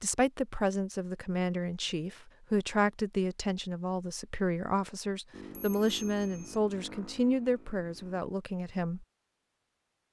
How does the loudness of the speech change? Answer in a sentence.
The loudness of the speech stays about the same.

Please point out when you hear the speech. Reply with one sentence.
The speech can be heard from 0.0 to 9.1 s.